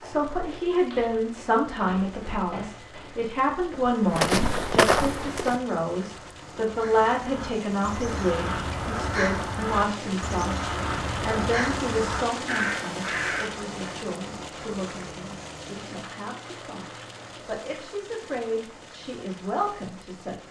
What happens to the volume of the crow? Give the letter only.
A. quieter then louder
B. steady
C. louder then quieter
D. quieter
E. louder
E.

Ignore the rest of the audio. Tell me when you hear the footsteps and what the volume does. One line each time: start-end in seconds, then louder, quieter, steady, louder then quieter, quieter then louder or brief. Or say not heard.
0.0-5.6 louder.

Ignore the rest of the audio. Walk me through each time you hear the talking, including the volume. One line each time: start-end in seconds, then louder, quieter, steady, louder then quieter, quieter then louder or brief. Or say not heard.
0.0-20.4 quieter.